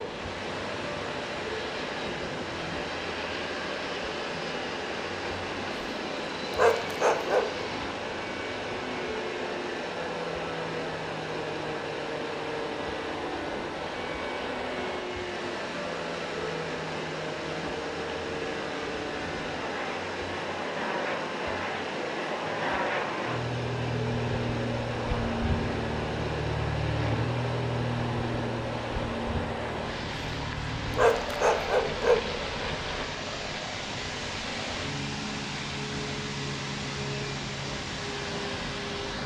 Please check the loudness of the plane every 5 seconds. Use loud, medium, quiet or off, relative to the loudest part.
medium, medium, medium, medium, loud, loud, medium, medium.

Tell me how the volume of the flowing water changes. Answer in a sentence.
The volume of the flowing water stays about the same.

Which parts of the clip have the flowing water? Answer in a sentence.
The flowing water can be heard from 0.0 to 39.2 s.